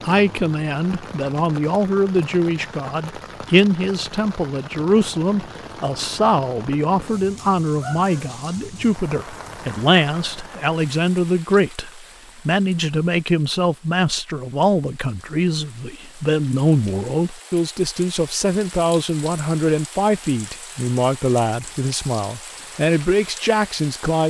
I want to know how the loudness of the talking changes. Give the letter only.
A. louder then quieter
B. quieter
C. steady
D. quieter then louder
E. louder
C.